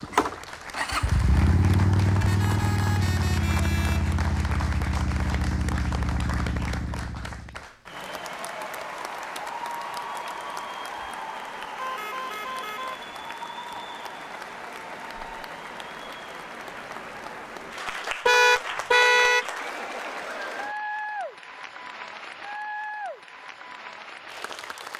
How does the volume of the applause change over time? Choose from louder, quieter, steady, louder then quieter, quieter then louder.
steady.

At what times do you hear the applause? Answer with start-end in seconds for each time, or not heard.
0.0-24.9.